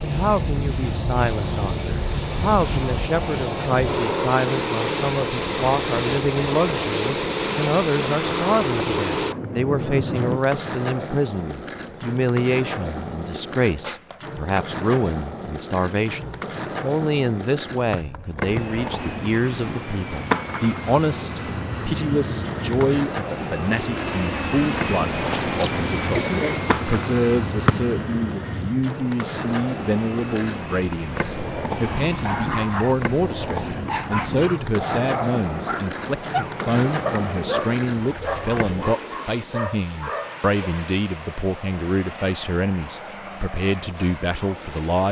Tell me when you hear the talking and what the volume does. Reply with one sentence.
You can hear the talking from 0.0 to 45.0 s, at a steady volume.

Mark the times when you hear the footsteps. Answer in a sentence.
The footsteps can't be heard in this clip.